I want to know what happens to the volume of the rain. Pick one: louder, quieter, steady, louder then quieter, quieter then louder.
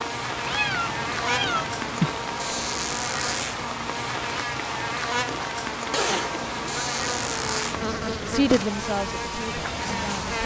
steady.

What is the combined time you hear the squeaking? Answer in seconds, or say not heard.
2 s.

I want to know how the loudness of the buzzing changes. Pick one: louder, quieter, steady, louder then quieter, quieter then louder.
steady.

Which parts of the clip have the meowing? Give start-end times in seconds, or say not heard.
0.5-2.2, 5.9-7.7.